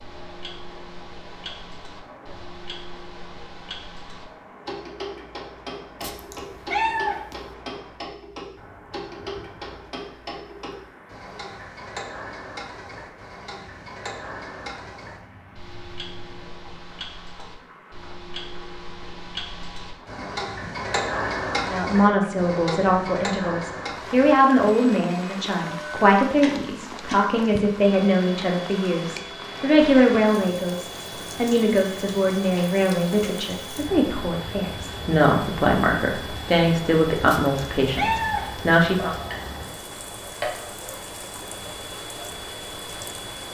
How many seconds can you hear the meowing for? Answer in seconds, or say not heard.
3 s.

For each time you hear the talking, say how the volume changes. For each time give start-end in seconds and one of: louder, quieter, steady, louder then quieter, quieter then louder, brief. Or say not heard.
21.6-39.1 steady.